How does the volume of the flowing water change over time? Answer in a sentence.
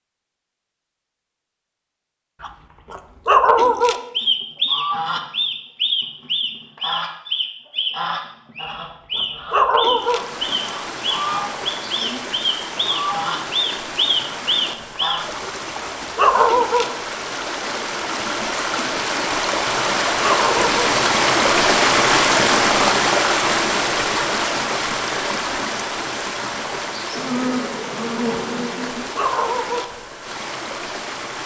The loudness of the flowing water goes up, then down.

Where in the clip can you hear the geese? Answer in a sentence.
The geese can be heard from 4.2 to 15.2 s.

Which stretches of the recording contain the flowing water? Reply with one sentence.
The flowing water can be heard from 9.9 to 31.4 s.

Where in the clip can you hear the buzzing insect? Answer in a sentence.
You can hear the buzzing insect from 27.1 to 29.1 s.